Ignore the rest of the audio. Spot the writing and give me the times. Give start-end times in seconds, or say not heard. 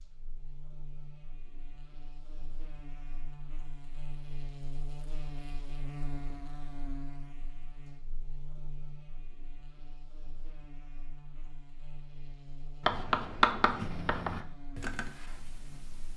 12.8-14.4.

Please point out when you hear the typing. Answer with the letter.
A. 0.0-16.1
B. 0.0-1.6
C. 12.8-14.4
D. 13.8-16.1
D.